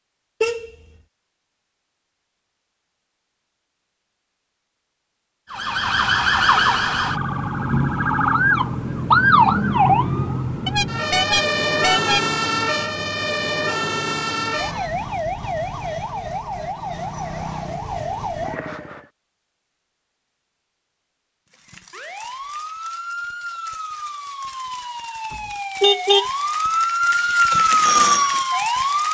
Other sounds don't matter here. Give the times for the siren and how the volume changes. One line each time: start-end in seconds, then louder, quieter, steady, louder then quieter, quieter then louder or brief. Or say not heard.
5.5-19.1 quieter
21.6-29.0 louder.